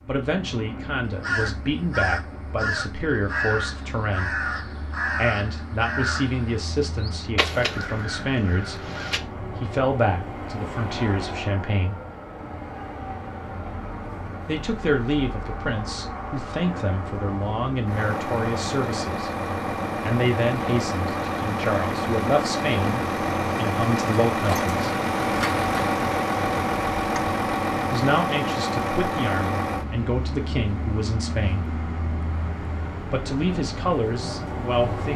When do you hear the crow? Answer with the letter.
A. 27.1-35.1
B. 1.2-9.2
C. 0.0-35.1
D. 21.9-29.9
B.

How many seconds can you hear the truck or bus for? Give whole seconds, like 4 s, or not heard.
35 s.